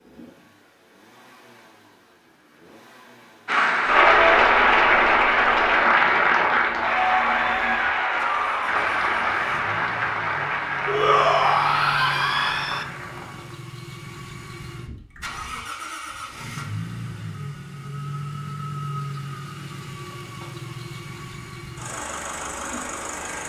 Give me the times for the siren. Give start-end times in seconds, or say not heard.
not heard.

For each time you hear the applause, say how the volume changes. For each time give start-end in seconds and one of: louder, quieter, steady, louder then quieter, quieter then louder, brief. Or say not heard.
3.5-13.6 quieter.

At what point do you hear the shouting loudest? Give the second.
11 s.